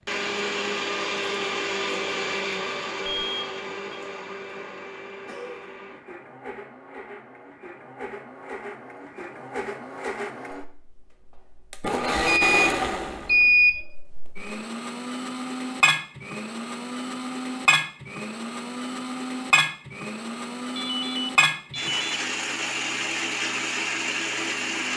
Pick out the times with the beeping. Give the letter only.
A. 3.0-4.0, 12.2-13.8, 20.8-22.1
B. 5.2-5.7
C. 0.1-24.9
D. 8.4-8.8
A.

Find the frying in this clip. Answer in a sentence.
You can't hear the frying here.